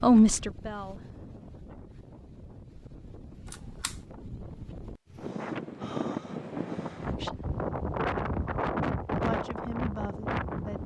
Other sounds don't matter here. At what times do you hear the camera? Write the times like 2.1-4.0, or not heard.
3.5-4.0.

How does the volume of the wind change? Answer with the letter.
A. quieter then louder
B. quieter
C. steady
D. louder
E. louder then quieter
D.